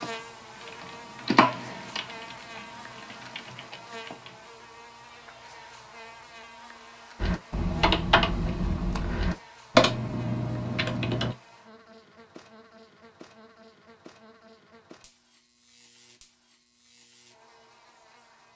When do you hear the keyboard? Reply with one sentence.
The keyboard can be heard from 0.0 to 4.5 s and from 7.2 to 11.3 s.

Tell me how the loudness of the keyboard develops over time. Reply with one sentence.
The loudness of the keyboard goes down, then up.